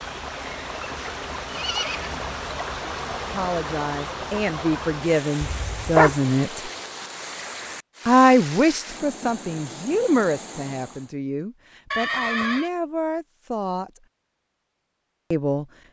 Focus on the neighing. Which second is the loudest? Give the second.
6 s.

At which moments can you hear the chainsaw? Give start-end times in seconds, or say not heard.
not heard.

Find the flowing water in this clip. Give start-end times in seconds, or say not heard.
0.0-11.2.